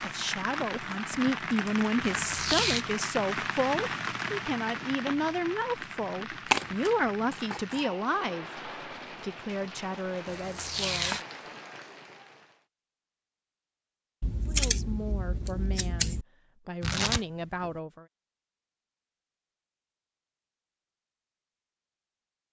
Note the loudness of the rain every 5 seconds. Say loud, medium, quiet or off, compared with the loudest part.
loud, medium, medium, off, off.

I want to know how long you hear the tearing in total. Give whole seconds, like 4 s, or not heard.
3 s.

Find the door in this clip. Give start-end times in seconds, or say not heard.
not heard.